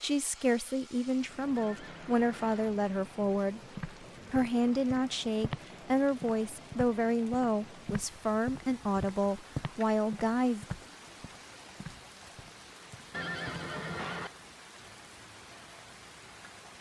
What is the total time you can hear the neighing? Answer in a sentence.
You can hear the neighing for 2 seconds altogether.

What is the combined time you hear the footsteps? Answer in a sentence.
The footsteps can be heard for 10 seconds in total.